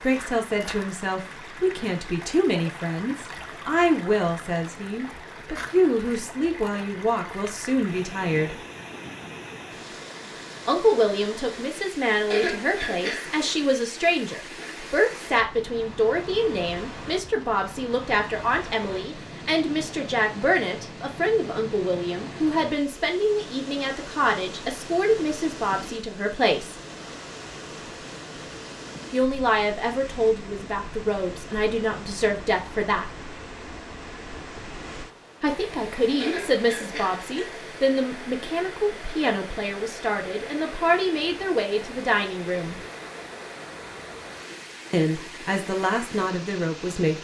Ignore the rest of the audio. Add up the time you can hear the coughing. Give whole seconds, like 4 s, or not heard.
3 s.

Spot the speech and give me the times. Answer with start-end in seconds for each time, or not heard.
0.0-8.6, 10.7-26.8, 29.1-33.1, 35.4-42.8, 44.9-47.1.